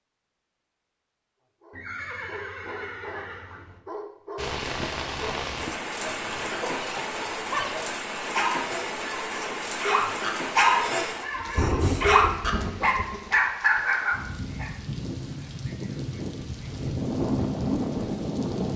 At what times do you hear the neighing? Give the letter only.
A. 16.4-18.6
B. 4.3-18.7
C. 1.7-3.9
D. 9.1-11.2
C.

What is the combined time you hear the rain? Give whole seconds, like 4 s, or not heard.
14 s.